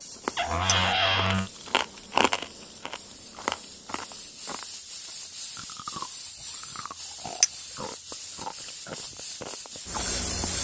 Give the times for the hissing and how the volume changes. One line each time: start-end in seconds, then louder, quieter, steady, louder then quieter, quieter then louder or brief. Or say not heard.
0.0-10.5 louder.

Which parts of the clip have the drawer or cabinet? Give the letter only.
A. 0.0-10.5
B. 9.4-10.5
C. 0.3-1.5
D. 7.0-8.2
C.